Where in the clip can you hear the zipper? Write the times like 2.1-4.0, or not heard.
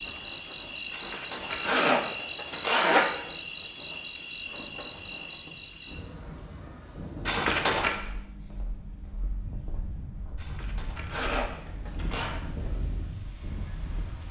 0.9-3.0, 7.2-8.0, 10.3-12.4.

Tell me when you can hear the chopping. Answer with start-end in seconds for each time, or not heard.
not heard.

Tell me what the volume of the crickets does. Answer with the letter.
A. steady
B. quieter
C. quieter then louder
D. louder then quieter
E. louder
B.